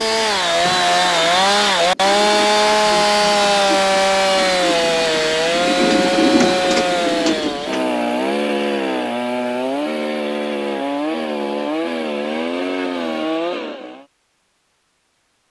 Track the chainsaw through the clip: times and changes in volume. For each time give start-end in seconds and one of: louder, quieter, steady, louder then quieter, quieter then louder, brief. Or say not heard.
0.0-14.1 quieter.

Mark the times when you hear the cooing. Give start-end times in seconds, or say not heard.
0.0-8.0.